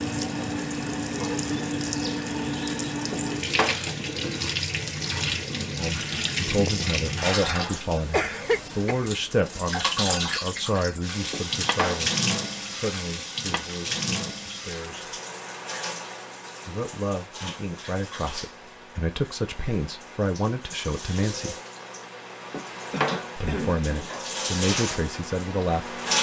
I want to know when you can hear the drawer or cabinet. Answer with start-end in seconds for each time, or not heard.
3.1-3.8, 11.3-12.1, 22.5-24.2.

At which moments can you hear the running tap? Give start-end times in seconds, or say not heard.
0.0-26.1.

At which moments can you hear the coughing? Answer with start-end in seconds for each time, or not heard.
8.1-9.1, 22.9-23.9.